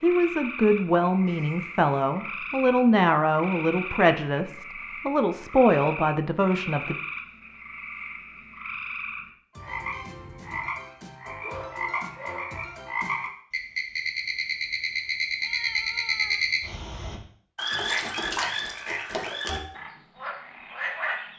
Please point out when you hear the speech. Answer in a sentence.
The speech can be heard from 0.0 to 7.0 s.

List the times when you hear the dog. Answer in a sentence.
The dog can be heard from 11.2 to 12.6 s.